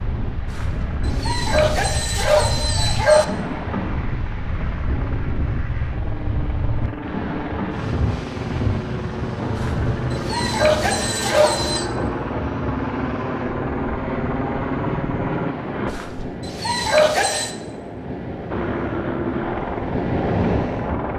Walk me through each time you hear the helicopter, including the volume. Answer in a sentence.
The helicopter can be heard from 0.0 to 15.9 s, getting louder; and briefly from 18.4 to 21.1 s.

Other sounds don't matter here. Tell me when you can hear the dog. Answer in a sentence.
You can hear the dog from 0.5 to 3.2 s, from 9.6 to 11.8 s and from 15.8 to 17.5 s.